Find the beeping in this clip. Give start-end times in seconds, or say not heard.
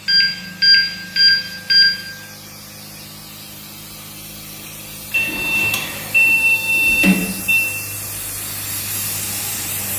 0.1-1.9, 5.1-7.8.